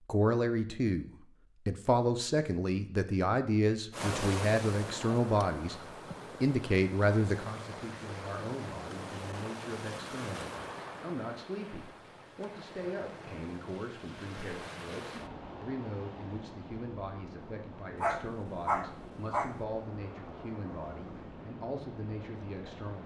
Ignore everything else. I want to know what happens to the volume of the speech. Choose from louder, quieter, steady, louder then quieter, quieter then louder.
quieter.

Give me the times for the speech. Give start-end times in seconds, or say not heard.
0.1-5.8, 6.4-23.0.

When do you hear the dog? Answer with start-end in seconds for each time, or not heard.
18.0-19.6.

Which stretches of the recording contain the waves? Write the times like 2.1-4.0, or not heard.
3.9-23.0.